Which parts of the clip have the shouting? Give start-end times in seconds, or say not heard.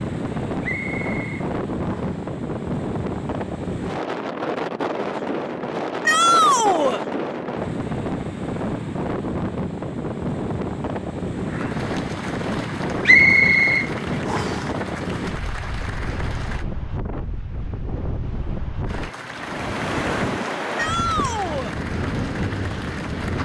6.0-7.0, 20.8-21.8.